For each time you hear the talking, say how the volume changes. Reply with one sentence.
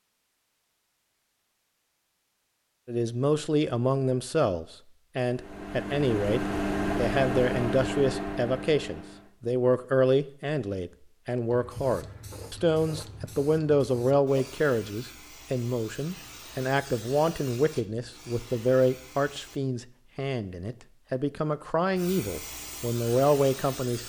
The talking can be heard from 2.9 to 24.0 s, at a steady volume.